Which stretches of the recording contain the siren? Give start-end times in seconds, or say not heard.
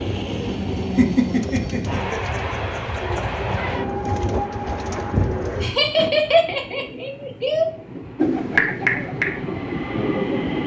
not heard.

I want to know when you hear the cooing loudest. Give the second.
9 s.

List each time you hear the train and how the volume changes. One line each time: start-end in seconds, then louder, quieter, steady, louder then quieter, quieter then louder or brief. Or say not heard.
0.0-10.6 quieter then louder.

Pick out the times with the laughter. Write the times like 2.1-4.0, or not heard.
0.9-3.2, 5.6-7.7.